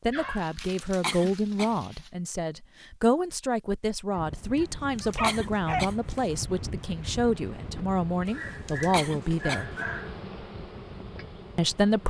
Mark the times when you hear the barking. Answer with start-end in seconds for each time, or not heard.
0.1-2.1, 4.2-5.8, 8.2-10.2.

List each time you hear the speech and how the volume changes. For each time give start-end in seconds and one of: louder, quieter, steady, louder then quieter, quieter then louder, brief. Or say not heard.
0.0-9.7 steady
11.6-12.0 brief.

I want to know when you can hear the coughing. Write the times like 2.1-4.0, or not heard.
0.8-1.7, 5.0-6.2, 8.7-9.6.